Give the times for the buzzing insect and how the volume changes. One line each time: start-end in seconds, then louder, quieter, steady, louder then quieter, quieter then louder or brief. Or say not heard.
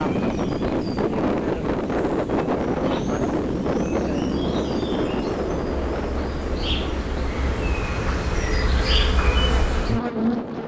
0.0-10.6 louder.